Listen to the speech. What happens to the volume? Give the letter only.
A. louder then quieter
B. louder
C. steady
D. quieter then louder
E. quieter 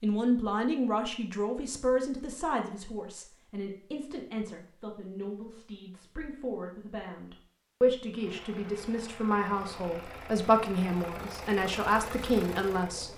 D.